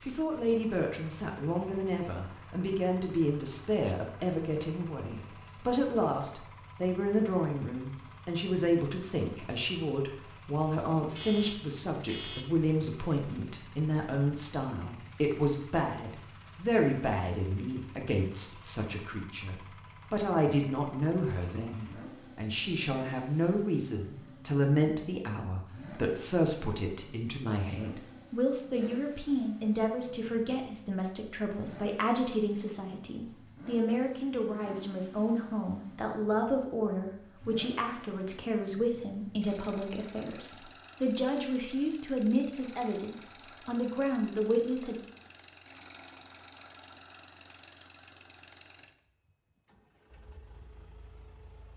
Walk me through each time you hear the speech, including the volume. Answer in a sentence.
You can hear the speech from 0.1 to 45.0 s, at a steady volume.